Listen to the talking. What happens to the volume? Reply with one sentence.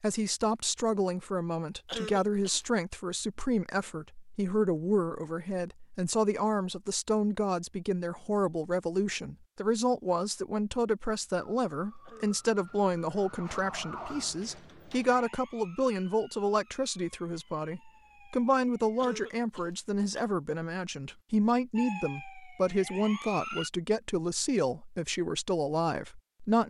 The loudness of the talking stays about the same.